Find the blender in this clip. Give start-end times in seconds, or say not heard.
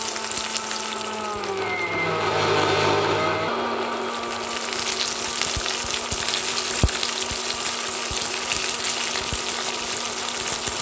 0.0-10.7.